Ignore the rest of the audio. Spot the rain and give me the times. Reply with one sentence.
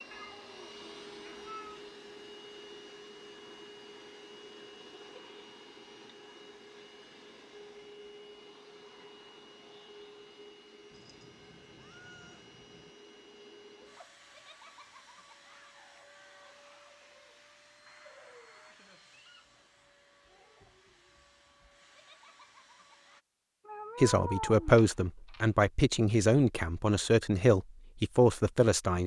The rain can't be heard in this clip.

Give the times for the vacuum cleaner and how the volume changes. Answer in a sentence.
The vacuum cleaner can be heard from 0.0 to 23.2 s, getting quieter.